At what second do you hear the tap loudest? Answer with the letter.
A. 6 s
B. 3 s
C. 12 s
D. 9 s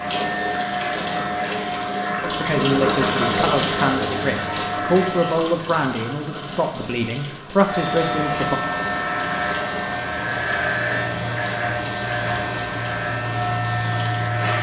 B.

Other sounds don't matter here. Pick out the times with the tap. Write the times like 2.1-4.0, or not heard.
0.0-14.4.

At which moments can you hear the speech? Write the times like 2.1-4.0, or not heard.
2.2-8.6.